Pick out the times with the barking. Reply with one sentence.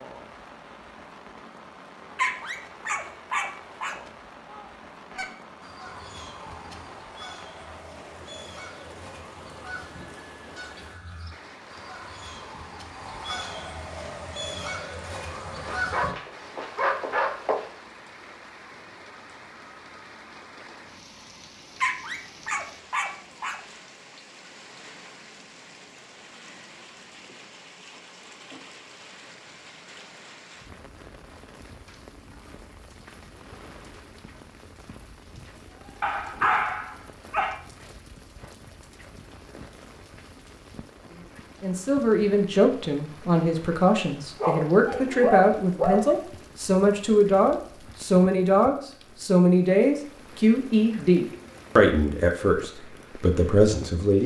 You can hear the barking from 2.1 to 4.0 s, from 15.7 to 17.6 s, from 21.8 to 23.6 s, from 36.0 to 37.6 s and from 44.4 to 46.1 s.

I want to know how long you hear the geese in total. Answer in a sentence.
The geese can be heard for 12 seconds in total.